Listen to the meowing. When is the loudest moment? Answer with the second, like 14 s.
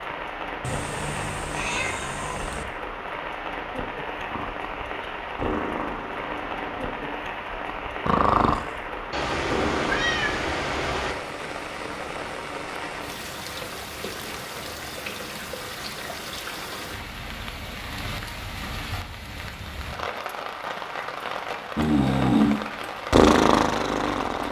10 s.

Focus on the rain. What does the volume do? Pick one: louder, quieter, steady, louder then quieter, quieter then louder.
steady.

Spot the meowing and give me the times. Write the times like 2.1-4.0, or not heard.
0.6-2.6, 9.1-11.2, 18.6-19.1.